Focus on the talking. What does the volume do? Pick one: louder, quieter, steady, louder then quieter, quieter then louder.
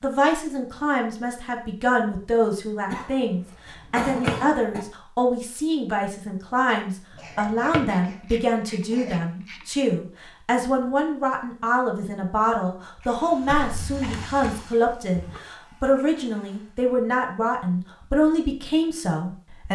steady.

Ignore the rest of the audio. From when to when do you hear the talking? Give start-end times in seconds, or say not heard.
0.0-19.7.